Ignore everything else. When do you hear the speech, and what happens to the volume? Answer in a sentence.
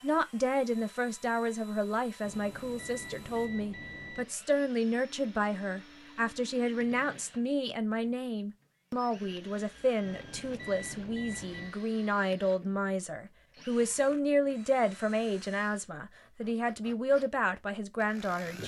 The speech can be heard from 0.0 to 18.6 s, at a steady volume.